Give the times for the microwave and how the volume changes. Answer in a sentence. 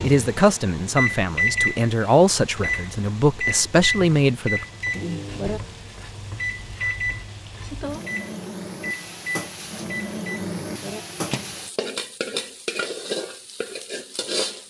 You can hear the microwave from 0.0 to 11.6 s, getting quieter.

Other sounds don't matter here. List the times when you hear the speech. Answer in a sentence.
The speech can be heard from 0.0 to 4.7 s.